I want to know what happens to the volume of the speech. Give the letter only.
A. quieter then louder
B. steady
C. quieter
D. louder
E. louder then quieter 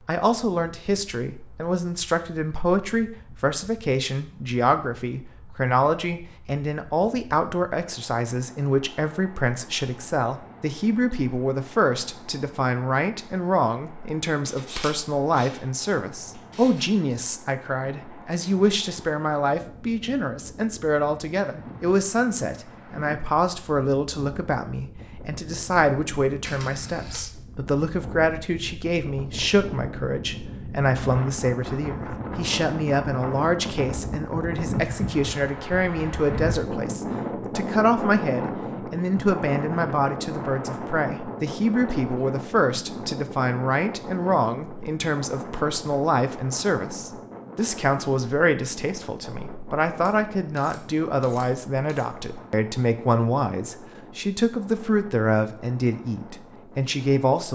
B.